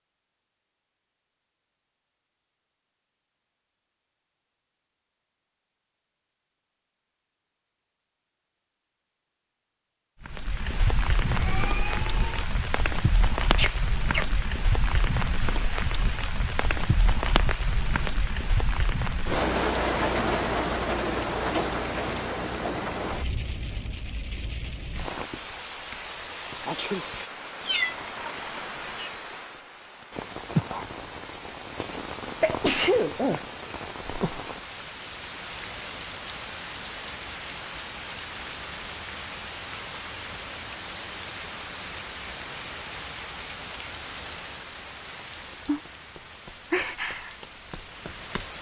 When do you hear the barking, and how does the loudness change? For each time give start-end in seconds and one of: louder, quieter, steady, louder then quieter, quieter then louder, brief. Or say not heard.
not heard.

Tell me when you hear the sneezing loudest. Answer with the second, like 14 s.
33 s.